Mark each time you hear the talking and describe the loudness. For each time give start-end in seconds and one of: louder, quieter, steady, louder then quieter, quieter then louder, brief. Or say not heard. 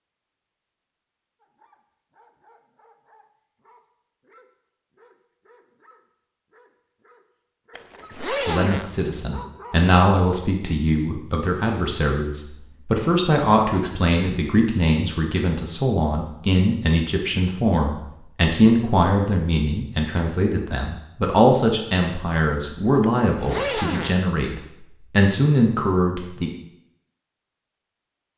8.2-26.5 steady.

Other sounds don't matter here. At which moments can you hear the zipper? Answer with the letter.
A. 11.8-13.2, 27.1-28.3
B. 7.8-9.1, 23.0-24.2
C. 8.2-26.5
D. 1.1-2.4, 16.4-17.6
B.